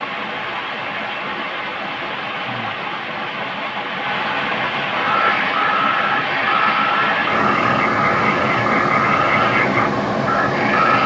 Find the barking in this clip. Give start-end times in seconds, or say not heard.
not heard.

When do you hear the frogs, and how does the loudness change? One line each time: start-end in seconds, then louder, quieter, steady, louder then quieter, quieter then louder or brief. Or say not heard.
5.0-11.0 steady.